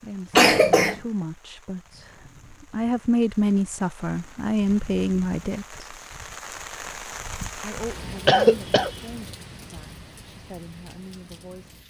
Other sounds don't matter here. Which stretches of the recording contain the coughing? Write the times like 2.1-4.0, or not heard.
0.3-0.9, 8.2-8.9.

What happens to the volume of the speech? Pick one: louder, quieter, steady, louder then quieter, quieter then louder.
louder then quieter.